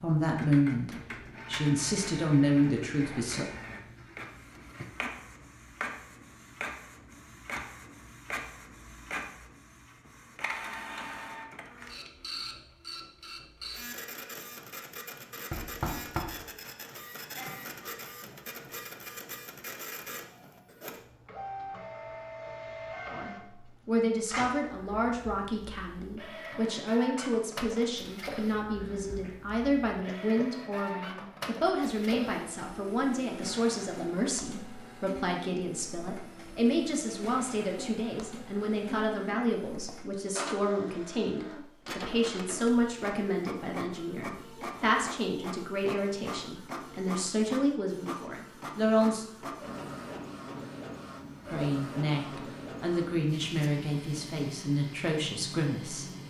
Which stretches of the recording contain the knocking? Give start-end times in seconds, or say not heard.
15.5-16.5.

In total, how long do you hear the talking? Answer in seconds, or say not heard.
34 s.